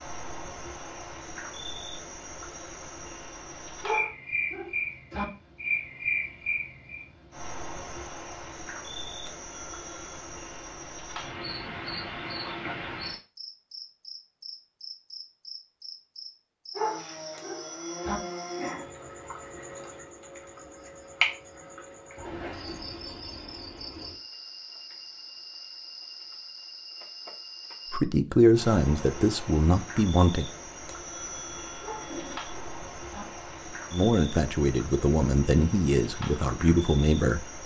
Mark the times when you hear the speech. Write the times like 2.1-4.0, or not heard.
27.9-30.4, 33.9-37.6.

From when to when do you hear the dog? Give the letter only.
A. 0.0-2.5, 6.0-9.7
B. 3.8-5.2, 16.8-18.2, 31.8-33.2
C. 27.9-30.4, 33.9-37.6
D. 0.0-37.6
B.